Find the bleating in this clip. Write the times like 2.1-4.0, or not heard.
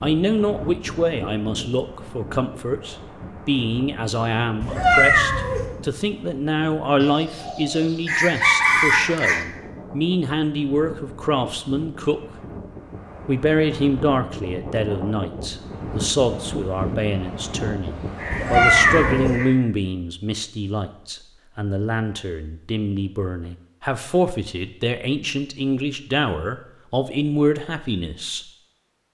not heard.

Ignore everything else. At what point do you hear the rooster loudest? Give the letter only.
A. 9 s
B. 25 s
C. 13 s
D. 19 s
A.